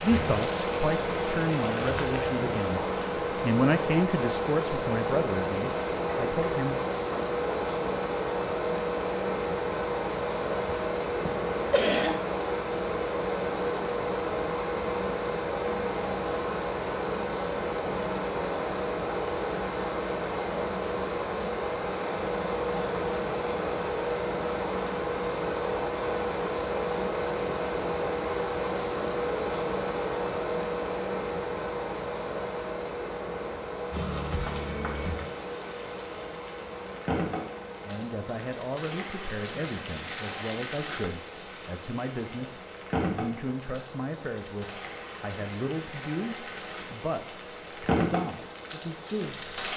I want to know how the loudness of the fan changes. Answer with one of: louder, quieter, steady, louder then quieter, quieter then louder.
quieter.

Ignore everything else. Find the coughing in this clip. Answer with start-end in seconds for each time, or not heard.
10.7-12.2.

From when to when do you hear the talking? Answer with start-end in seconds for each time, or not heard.
0.0-6.8, 37.9-49.5.